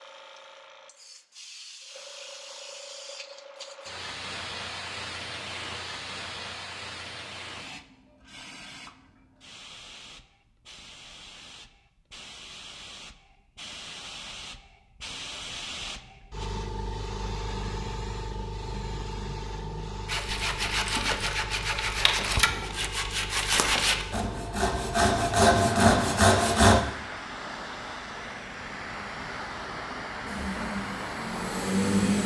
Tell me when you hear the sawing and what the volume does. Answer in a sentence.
The sawing can be heard from 20.1 to 26.8 s, getting louder.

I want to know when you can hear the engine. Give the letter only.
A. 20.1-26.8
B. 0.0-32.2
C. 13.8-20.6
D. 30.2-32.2
D.